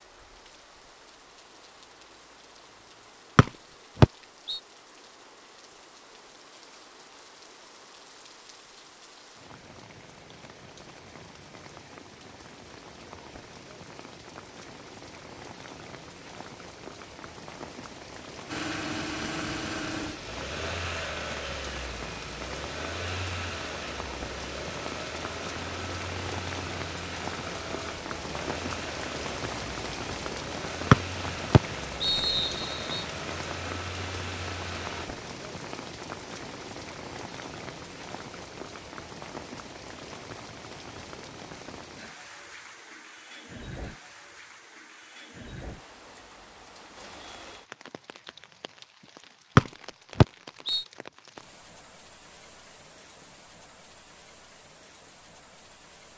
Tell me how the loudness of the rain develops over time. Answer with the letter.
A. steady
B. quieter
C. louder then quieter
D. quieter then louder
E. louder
C.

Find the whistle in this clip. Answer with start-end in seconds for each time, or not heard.
3.4-4.6, 30.9-33.0, 49.5-50.9.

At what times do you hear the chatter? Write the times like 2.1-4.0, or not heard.
not heard.